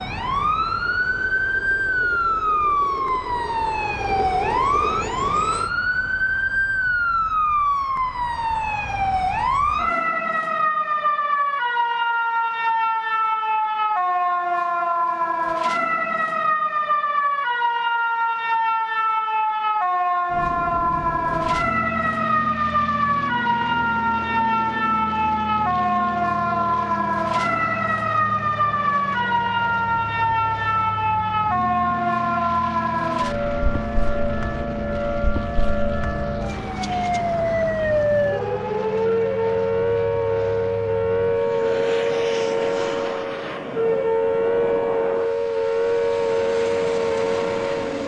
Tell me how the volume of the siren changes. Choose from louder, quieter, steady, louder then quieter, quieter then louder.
steady.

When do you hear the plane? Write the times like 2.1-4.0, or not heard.
0.2-5.7, 20.2-48.0.